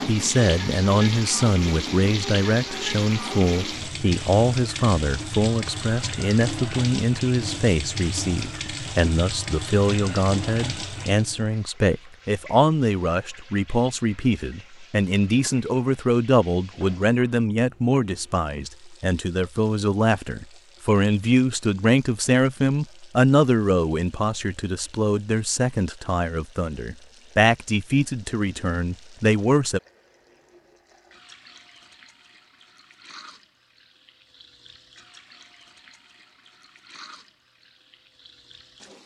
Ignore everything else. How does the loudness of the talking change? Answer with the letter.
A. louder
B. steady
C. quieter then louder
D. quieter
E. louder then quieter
B.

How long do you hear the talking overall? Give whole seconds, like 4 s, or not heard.
30 s.